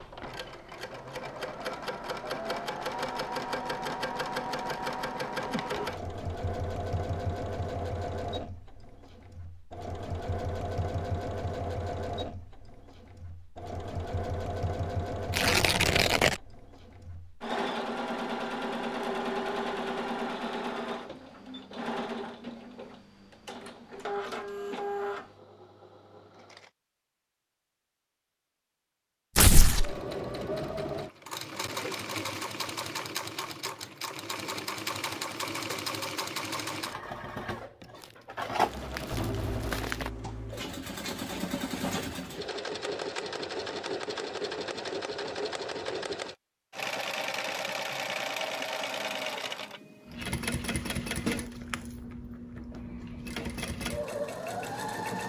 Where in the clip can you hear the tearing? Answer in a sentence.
You can hear the tearing from 15.3 to 16.4 s, from 29.4 to 29.9 s and from 37.8 to 40.1 s.